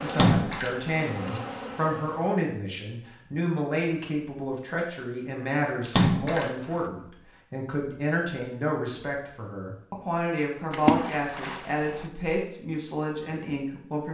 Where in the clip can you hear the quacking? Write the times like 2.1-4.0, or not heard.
not heard.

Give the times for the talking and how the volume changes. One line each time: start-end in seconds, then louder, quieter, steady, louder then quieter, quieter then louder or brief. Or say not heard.
0.0-14.0 steady.